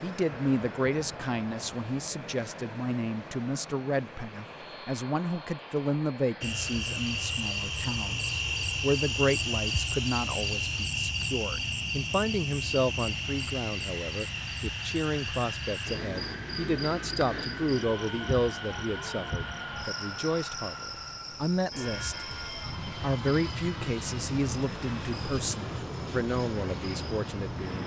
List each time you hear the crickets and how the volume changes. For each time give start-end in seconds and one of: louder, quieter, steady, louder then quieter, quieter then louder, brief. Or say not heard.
6.4-27.8 quieter.